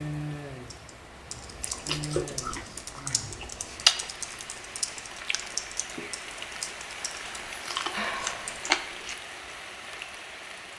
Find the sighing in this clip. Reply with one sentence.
The sighing can be heard from 3.0 to 3.5 s and from 7.9 to 8.7 s.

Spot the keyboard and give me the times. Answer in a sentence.
You can hear the keyboard from 0.7 to 8.7 s.